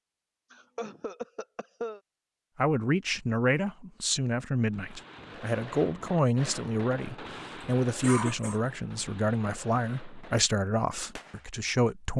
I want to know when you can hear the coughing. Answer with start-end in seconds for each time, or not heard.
0.5-2.0, 8.0-8.6.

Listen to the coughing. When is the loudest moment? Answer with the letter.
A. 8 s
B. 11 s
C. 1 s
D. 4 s
A.